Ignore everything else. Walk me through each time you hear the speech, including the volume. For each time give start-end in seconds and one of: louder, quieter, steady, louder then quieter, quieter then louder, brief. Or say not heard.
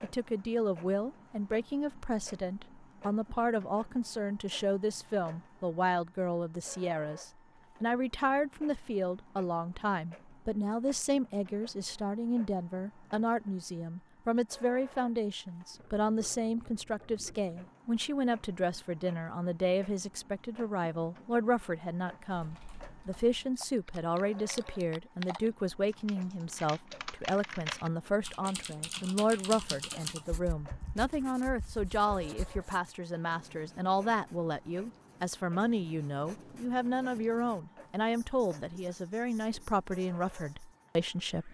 0.0-41.4 steady.